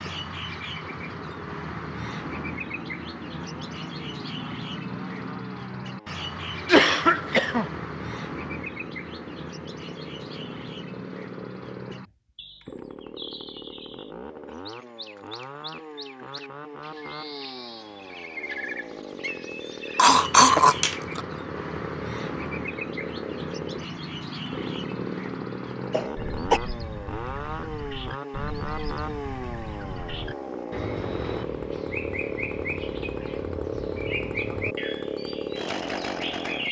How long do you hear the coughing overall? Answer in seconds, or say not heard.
3 s.